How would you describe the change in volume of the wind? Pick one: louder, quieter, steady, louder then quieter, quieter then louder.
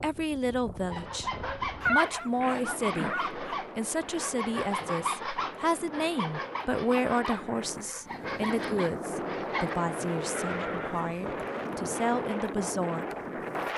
louder.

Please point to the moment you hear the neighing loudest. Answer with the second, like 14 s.
2 s.